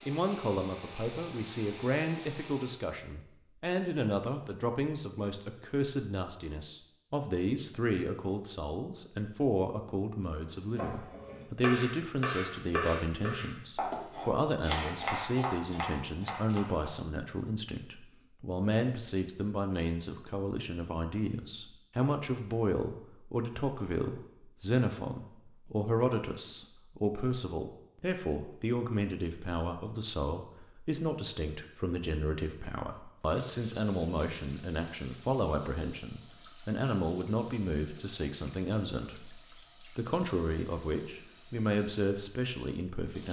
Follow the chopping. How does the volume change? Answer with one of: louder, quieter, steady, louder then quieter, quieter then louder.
steady.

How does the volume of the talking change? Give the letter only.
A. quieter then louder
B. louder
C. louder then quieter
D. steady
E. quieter
D.